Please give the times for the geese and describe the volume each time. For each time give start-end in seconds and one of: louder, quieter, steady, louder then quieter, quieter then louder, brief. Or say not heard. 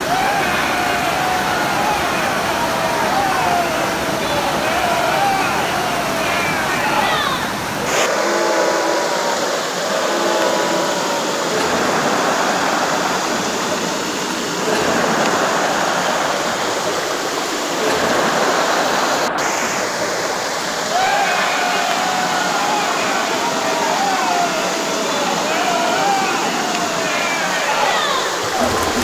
not heard.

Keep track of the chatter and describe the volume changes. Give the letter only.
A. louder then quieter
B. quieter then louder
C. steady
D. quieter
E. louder
C.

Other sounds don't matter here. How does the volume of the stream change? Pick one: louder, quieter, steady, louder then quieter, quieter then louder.
steady.